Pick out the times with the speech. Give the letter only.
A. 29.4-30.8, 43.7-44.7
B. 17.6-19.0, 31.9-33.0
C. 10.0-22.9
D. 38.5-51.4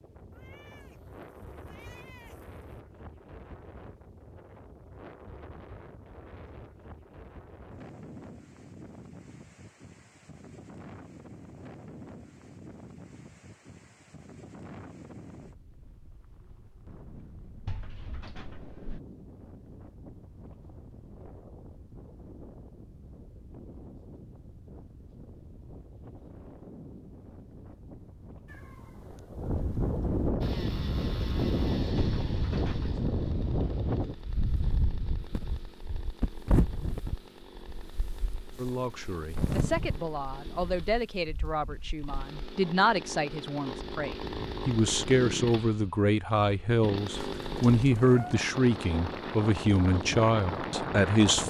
D.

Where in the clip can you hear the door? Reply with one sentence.
You can hear the door from 17.6 to 19.0 s and from 31.9 to 33.0 s.